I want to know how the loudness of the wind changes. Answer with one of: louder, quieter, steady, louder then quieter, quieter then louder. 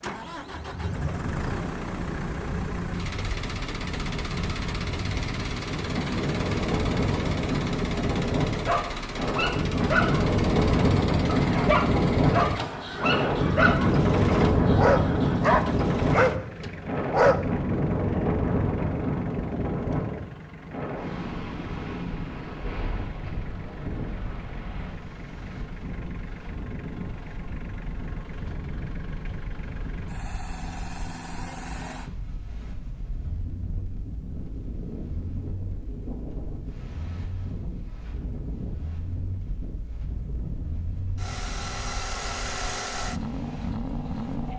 louder then quieter.